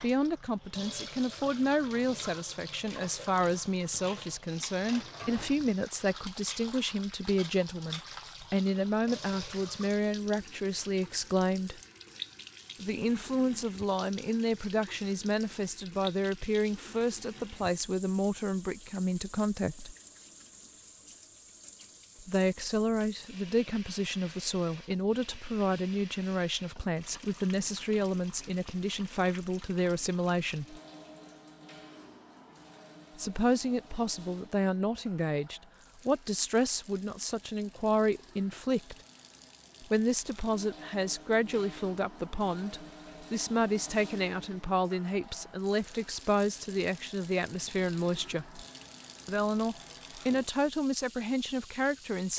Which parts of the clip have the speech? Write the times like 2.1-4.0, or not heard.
0.0-11.8, 12.8-19.9, 22.2-30.8, 33.1-39.0, 39.8-48.6, 49.2-52.3.